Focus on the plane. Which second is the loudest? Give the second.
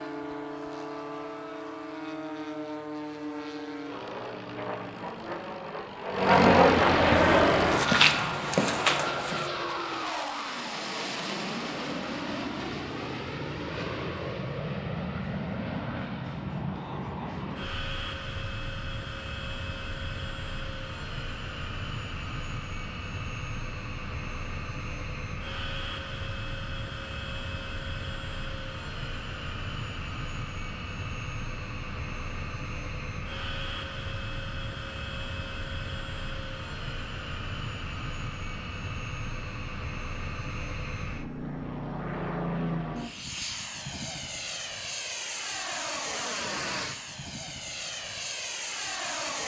7 s.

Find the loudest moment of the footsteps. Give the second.
8 s.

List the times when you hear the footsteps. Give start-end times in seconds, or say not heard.
7.1-9.4.